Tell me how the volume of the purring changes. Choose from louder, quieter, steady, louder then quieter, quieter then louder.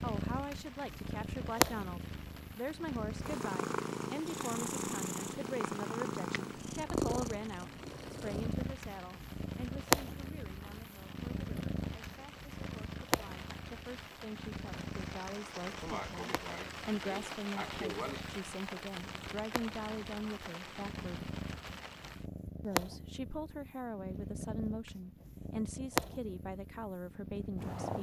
quieter then louder.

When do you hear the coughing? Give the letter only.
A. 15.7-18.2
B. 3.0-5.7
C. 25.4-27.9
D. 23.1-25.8
A.